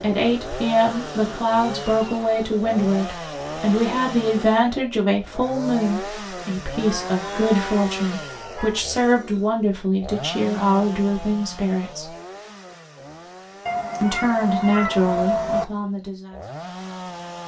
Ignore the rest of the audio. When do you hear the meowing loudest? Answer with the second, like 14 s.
15 s.